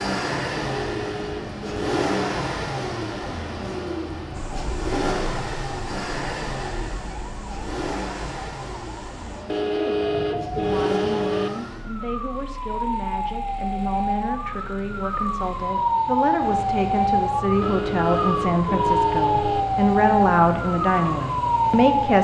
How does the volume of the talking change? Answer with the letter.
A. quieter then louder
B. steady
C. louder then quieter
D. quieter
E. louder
E.